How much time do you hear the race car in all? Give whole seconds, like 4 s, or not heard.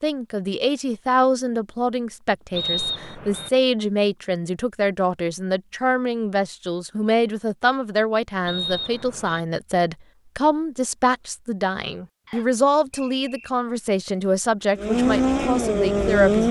2 s.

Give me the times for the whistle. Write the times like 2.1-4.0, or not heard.
2.5-3.5, 8.4-9.4, 12.2-13.5.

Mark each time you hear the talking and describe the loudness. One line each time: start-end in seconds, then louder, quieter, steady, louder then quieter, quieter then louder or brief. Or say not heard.
0.0-16.4 steady.